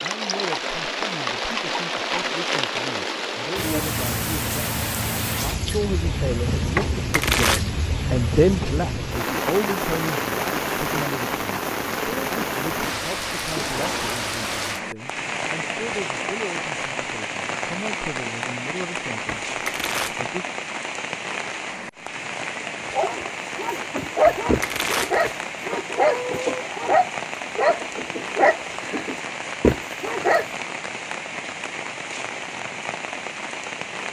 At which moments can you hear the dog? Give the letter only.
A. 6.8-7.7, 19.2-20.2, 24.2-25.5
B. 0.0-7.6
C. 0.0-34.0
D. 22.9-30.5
D.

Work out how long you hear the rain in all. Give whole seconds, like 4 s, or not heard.
34 s.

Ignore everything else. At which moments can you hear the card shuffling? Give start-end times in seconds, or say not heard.
6.8-7.7, 19.2-20.2, 24.2-25.5.